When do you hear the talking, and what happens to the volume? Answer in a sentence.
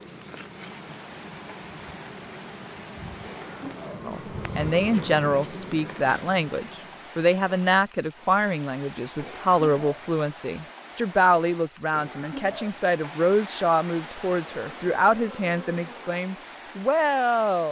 You can hear the talking from 4.0 to 17.6 s, at a steady volume.